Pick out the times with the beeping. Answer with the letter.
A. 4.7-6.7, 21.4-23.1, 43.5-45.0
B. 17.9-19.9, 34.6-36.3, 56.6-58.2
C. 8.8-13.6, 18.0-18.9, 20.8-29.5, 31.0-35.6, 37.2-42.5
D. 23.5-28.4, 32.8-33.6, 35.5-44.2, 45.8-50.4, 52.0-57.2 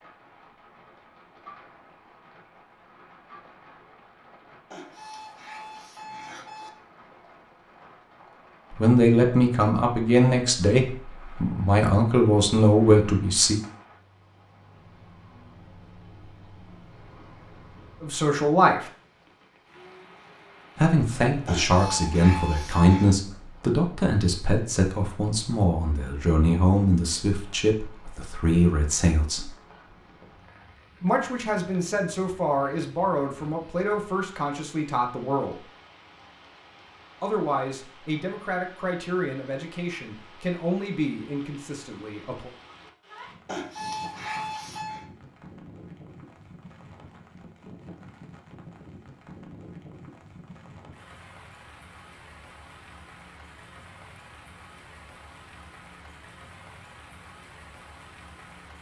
A.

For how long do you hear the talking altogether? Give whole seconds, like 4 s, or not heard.
24 s.